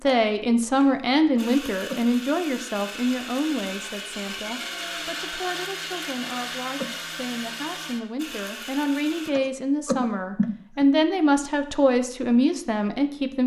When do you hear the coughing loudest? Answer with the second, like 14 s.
10 s.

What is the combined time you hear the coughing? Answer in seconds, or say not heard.
3 s.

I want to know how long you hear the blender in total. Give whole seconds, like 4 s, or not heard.
9 s.